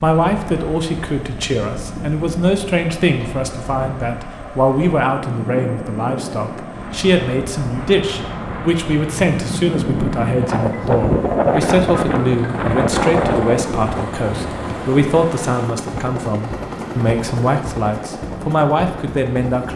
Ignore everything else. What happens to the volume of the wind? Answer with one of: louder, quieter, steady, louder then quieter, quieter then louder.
louder.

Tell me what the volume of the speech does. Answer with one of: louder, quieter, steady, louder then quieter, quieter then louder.
steady.